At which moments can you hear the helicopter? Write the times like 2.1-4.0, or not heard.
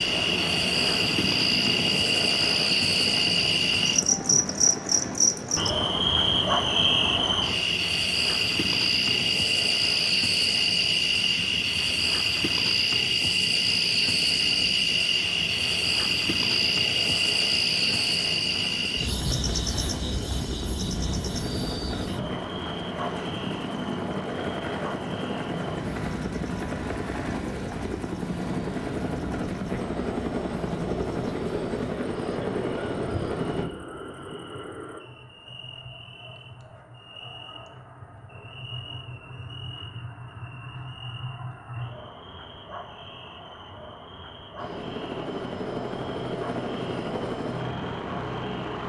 0.0-33.6, 44.5-48.8.